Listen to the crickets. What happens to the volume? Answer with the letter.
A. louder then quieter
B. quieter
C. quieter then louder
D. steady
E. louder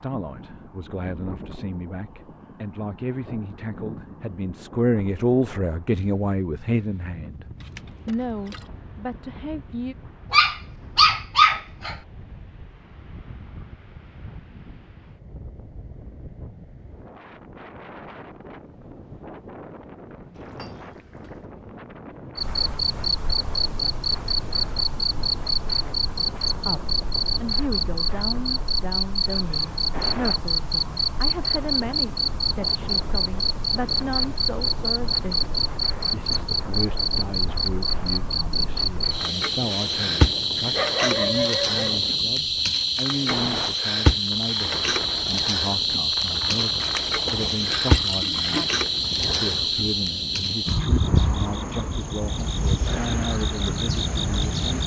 D.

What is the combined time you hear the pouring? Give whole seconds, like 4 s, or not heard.
4 s.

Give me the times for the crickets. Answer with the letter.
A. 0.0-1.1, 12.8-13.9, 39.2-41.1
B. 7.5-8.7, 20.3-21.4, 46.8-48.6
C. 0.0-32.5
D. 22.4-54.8
D.